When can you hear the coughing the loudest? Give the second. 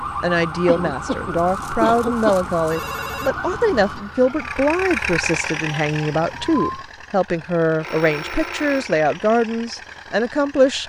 2 s.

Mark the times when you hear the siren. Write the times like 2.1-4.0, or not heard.
0.0-6.9.